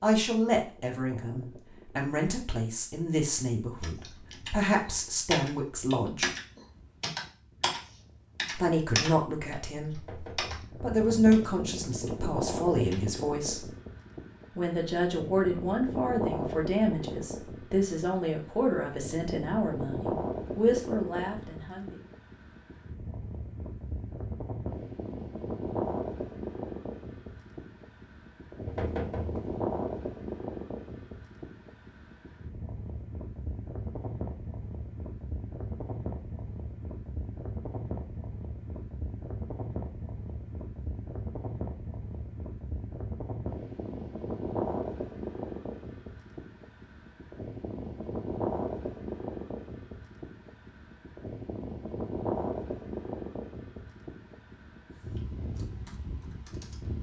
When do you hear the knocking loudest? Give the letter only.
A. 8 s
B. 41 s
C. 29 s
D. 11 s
C.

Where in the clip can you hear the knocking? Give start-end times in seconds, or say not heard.
9.9-10.7, 28.6-29.6.